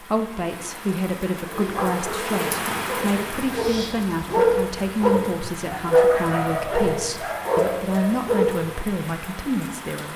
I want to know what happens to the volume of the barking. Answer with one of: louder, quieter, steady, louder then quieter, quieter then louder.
louder then quieter.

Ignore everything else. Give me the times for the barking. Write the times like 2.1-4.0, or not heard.
1.4-8.6.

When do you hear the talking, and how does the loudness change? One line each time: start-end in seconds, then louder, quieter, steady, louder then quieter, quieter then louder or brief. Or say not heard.
0.0-10.1 steady.